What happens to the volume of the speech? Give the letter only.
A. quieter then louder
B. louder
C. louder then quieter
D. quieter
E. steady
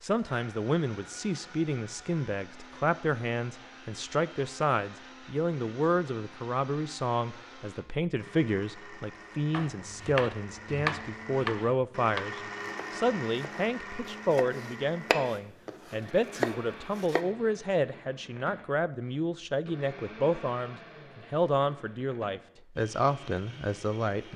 E.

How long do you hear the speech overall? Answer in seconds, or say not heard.
24 s.